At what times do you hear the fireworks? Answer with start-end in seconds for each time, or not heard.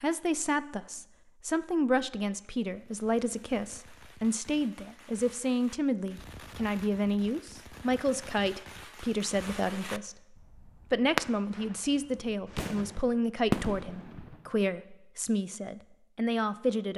2.6-14.5.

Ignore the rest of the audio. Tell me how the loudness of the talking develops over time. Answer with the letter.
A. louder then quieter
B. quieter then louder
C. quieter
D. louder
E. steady
E.